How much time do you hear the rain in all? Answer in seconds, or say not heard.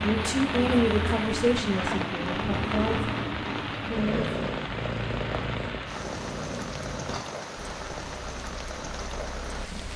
10 s.